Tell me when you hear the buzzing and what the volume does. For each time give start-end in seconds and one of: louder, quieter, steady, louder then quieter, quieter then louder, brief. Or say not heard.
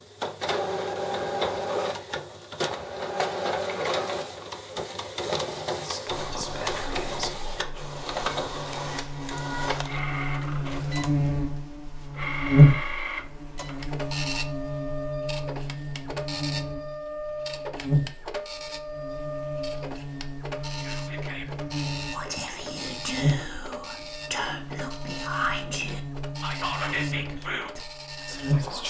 6.0-28.8 louder then quieter.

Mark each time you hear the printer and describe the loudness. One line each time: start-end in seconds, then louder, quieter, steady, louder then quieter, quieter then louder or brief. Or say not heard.
0.0-28.8 quieter.